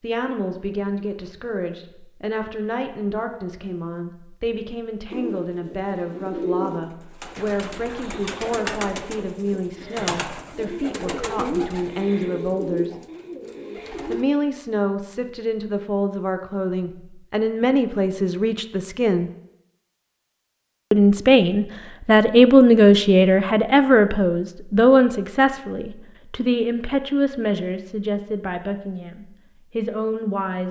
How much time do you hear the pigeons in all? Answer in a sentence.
You can hear the pigeons for 9 seconds altogether.